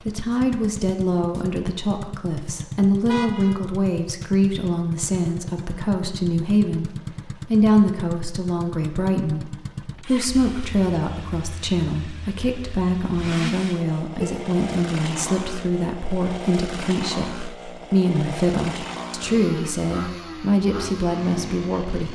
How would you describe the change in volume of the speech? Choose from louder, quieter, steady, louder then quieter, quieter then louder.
steady.